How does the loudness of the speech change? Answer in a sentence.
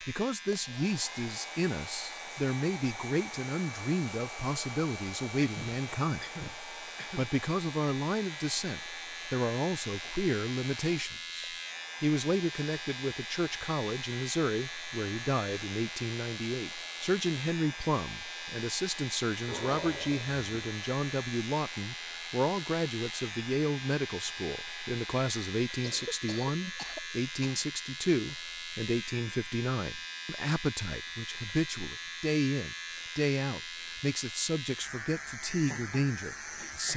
The loudness of the speech stays about the same.